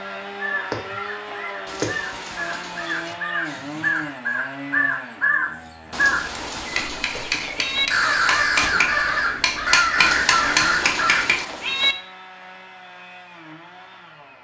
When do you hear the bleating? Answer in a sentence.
You can't hear the bleating here.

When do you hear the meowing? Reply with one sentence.
You can hear the meowing from 1.6 to 3.2 s, from 5.9 to 7.9 s and from 9.9 to 11.9 s.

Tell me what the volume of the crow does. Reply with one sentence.
The volume of the crow goes up.